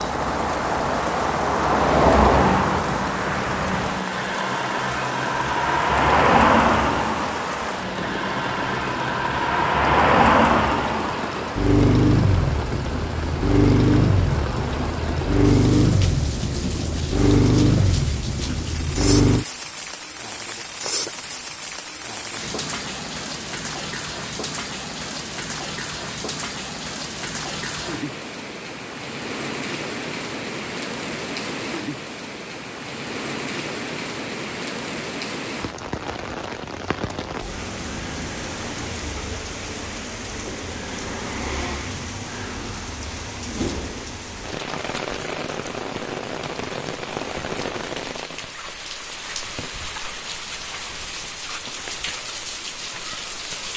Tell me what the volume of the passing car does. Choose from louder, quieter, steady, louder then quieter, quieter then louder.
steady.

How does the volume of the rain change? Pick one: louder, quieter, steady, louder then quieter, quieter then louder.
steady.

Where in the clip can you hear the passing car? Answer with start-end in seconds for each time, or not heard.
0.0-19.4.